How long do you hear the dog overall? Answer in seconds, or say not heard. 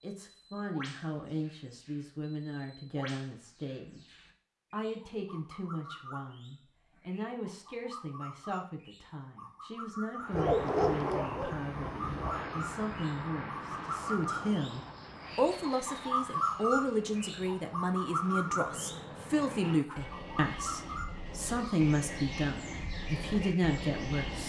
2 s.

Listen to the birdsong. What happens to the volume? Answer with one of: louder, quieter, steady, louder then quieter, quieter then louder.
louder then quieter.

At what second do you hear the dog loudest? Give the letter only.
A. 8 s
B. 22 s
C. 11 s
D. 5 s
C.